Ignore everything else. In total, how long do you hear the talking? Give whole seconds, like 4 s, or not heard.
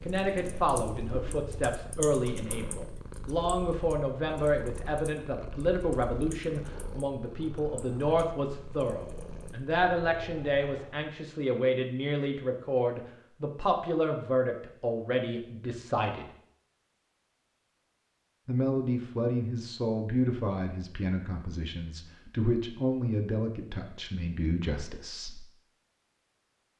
23 s.